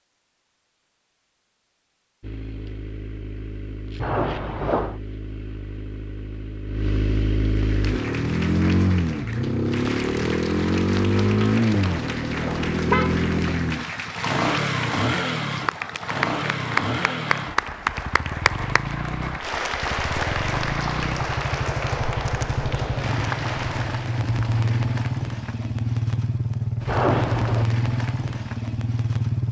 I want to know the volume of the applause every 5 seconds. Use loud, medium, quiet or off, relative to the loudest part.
off, medium, medium, loud, loud, off.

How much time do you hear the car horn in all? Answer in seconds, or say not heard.
3 s.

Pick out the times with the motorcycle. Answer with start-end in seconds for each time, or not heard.
2.2-29.4.